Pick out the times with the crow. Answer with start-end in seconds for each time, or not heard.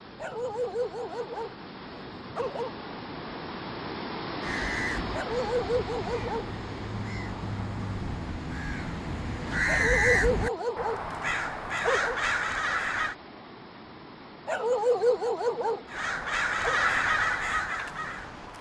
4.4-13.2, 15.8-18.5.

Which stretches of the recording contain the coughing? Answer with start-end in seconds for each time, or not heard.
not heard.